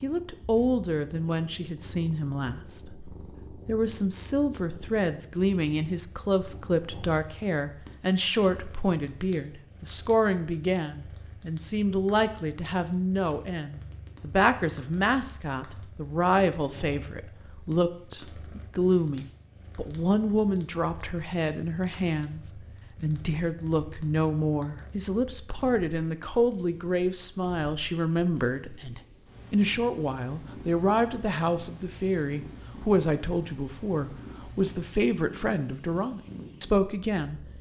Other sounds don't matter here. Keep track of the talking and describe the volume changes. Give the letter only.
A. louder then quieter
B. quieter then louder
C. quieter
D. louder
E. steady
E.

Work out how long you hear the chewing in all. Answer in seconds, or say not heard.
not heard.